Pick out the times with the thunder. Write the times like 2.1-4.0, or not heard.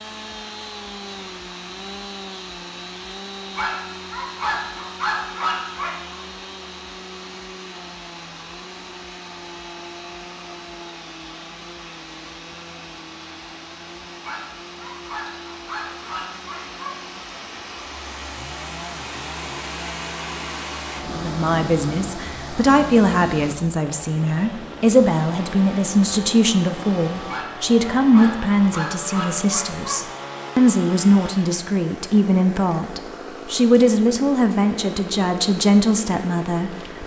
not heard.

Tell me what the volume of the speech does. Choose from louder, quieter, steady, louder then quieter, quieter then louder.
steady.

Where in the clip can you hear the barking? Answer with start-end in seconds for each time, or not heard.
3.5-6.2, 14.2-16.9, 27.2-30.0.